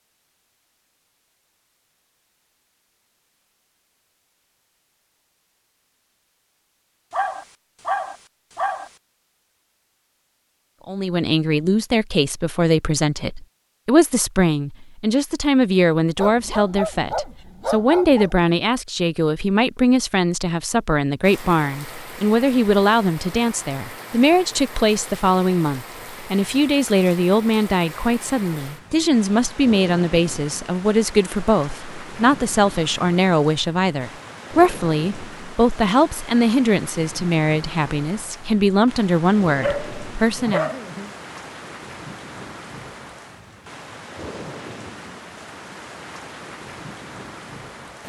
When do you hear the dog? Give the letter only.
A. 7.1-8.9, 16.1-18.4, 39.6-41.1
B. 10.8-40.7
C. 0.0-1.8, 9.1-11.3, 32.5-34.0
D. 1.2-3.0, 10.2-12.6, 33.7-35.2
A.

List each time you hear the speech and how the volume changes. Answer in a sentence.
You can hear the speech from 10.8 to 40.7 s, at a steady volume.